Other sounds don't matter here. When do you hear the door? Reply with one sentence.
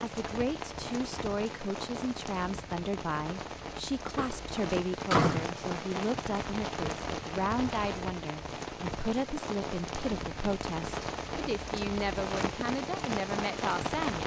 You can hear the door from 4.2 to 5.5 s.